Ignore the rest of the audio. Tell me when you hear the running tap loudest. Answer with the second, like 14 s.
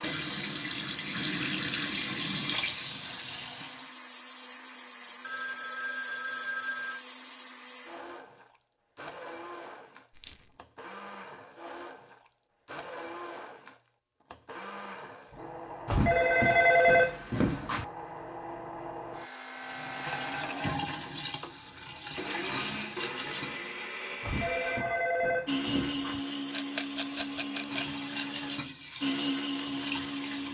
2 s.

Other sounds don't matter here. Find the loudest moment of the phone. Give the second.
17 s.